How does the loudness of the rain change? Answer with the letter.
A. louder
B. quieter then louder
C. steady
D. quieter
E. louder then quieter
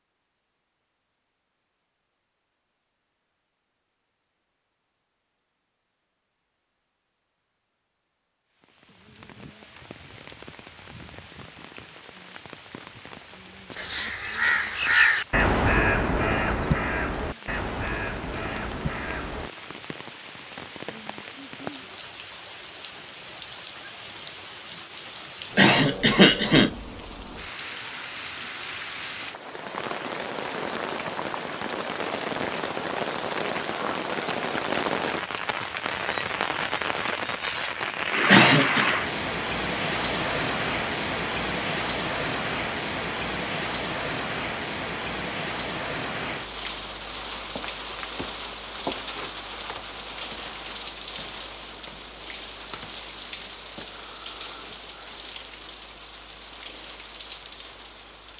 E.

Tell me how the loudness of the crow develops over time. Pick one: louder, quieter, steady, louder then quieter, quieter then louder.
quieter.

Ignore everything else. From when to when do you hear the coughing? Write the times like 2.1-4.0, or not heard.
25.6-26.7, 38.2-38.9.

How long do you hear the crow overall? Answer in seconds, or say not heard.
6 s.